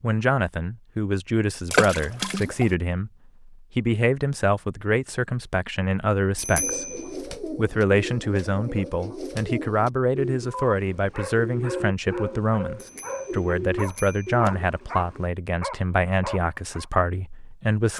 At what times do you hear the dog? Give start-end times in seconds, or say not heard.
10.4-16.9.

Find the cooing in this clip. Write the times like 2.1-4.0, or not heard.
6.5-15.3.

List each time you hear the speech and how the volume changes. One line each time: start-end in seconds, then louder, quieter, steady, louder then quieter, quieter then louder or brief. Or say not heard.
0.0-17.9 steady.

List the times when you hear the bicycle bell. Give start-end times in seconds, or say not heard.
6.3-7.2, 12.8-14.3.